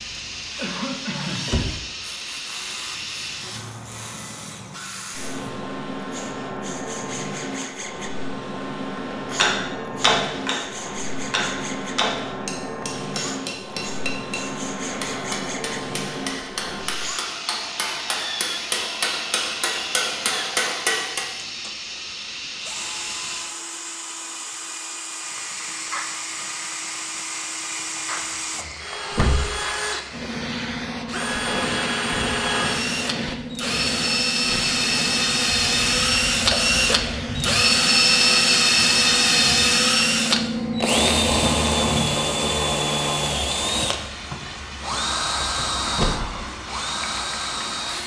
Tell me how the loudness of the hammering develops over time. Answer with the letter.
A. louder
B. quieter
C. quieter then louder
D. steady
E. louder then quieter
C.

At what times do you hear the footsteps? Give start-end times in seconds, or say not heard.
not heard.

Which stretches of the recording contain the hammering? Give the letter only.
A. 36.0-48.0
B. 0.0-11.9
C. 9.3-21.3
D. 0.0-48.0
C.